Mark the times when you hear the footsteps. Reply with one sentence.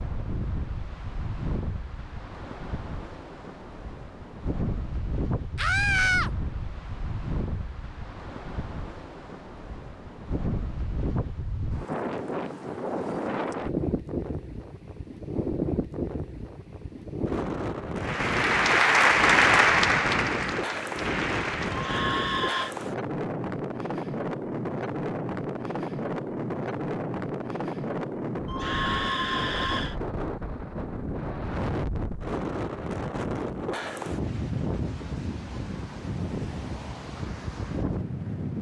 You can't hear the footsteps here.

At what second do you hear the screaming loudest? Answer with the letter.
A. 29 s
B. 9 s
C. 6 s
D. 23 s
C.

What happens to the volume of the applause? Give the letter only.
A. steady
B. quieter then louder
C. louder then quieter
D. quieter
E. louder
D.